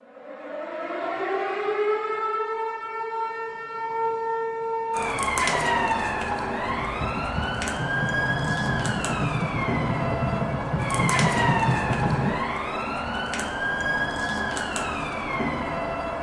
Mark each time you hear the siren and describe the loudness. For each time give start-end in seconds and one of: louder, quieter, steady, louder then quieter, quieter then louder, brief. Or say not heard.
0.0-16.1 steady.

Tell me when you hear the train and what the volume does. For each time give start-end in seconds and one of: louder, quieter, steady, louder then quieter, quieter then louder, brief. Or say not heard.
6.7-12.4 louder.